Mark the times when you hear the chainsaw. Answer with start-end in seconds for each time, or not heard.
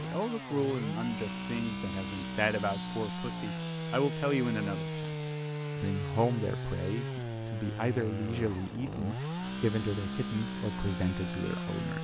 0.0-11.9.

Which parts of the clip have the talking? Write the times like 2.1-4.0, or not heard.
0.0-5.2, 5.8-11.9.